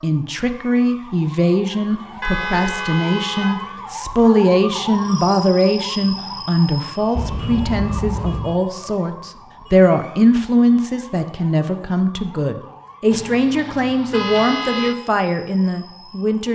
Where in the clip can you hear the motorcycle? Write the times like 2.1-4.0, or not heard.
not heard.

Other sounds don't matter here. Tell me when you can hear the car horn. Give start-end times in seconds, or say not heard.
2.2-3.7, 7.2-8.6, 13.1-14.9.